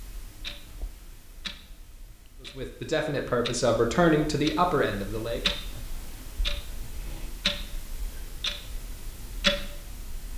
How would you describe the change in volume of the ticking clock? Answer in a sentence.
The volume of the ticking clock goes up.